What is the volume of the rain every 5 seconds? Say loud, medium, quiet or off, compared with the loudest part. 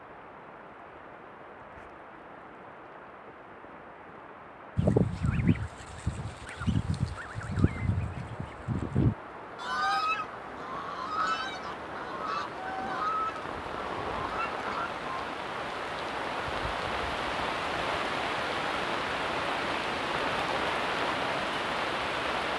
quiet, quiet, medium, loud, loud.